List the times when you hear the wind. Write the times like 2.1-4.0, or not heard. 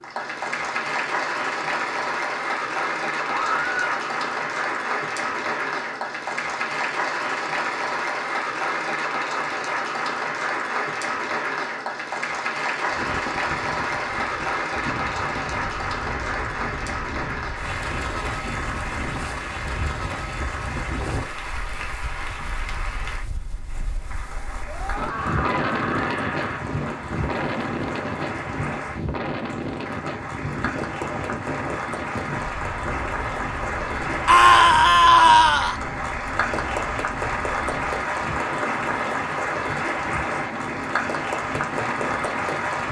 12.9-42.8.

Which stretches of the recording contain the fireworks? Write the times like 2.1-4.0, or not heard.
not heard.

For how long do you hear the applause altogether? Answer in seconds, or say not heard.
43 s.